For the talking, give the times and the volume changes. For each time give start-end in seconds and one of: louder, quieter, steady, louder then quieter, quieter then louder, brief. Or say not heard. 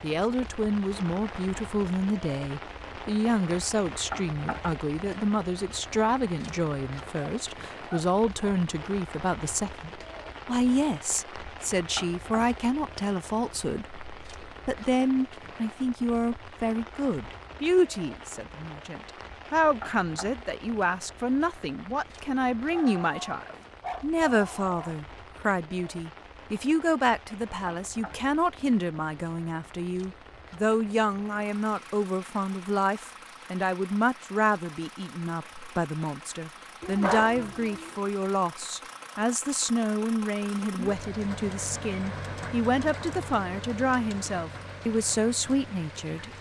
0.0-46.3 steady.